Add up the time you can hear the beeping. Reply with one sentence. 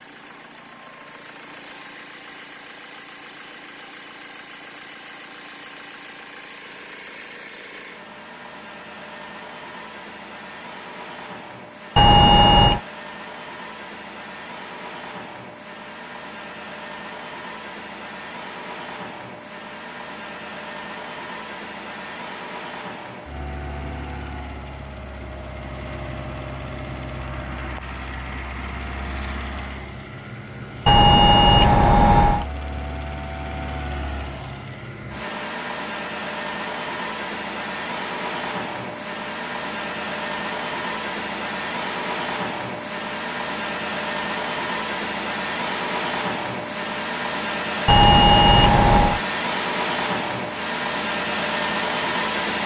You can hear the beeping for 4 seconds altogether.